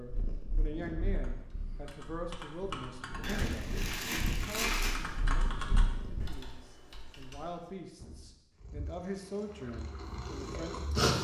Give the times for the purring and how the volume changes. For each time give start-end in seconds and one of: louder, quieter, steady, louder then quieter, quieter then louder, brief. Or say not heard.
0.0-6.4 quieter then louder
8.6-11.1 brief.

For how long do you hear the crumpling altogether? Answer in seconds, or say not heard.
2 s.